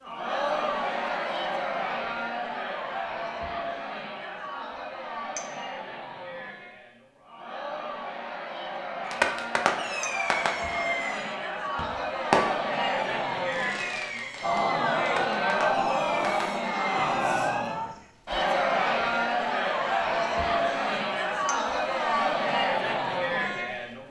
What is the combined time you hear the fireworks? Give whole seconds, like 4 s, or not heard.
8 s.